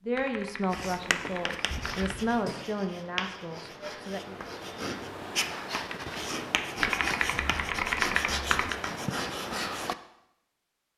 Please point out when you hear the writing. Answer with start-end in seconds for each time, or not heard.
0.7-9.9.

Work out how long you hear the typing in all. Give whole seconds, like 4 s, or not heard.
4 s.